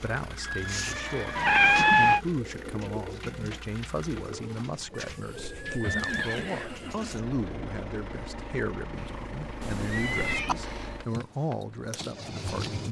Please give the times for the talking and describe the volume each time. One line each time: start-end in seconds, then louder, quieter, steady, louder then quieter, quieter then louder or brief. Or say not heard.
0.0-12.8 steady.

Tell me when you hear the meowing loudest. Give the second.
2 s.